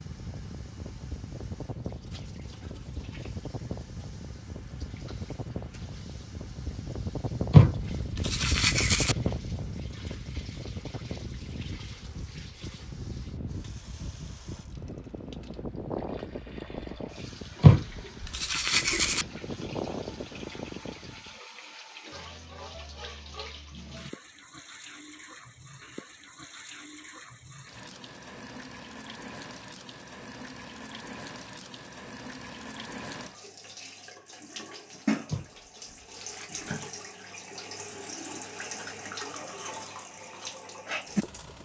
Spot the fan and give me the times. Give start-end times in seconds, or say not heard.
0.0-21.4.